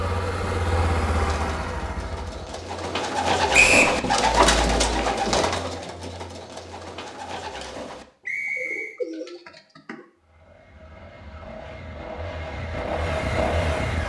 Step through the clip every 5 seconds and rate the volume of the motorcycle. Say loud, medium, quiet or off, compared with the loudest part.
loud, off, loud.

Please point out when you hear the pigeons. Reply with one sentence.
You can hear the pigeons from 1.1 to 10.1 s.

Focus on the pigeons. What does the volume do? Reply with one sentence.
The volume of the pigeons goes up, then down.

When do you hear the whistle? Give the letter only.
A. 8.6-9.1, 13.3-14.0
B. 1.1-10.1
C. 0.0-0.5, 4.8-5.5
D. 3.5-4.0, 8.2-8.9
D.